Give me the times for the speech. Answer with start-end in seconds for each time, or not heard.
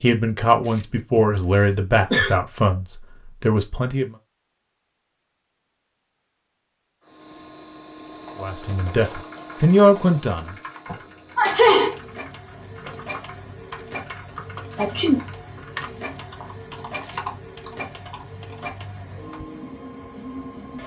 0.0-4.2, 8.4-10.6.